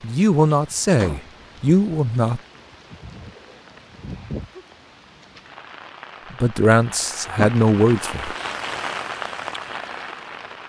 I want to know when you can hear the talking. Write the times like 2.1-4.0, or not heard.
0.0-2.4, 6.3-8.3.